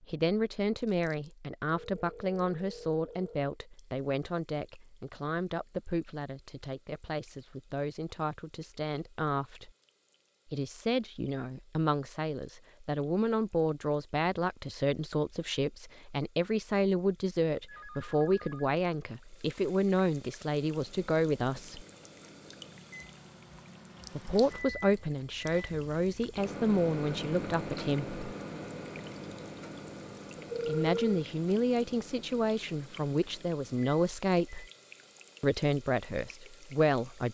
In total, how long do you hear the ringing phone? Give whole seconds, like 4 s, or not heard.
4 s.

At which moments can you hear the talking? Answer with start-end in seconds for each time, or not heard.
0.1-9.7, 10.4-21.9, 24.1-28.1, 30.6-34.6, 35.4-37.2.